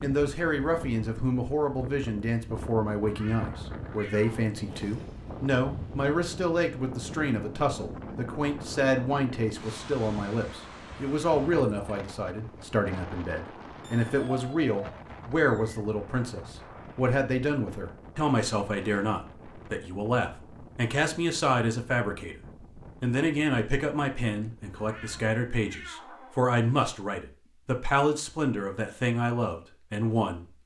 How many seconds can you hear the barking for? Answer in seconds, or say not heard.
not heard.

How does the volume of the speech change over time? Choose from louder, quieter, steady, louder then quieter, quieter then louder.
steady.